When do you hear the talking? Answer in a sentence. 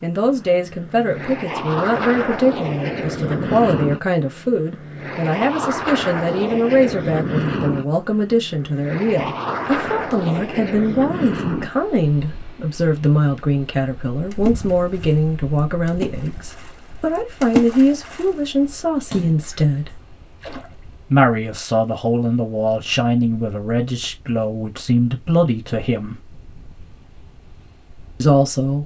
The talking can be heard from 0.0 to 20.0 s, from 21.1 to 26.2 s and from 28.2 to 28.8 s.